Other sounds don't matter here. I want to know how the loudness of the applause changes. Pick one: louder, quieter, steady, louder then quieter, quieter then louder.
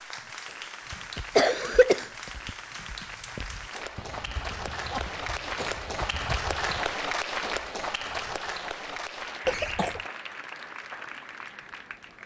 louder then quieter.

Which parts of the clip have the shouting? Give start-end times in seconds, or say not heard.
not heard.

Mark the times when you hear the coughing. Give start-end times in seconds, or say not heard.
0.9-2.5, 4.7-5.8, 9.4-10.0.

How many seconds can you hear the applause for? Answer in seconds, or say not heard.
12 s.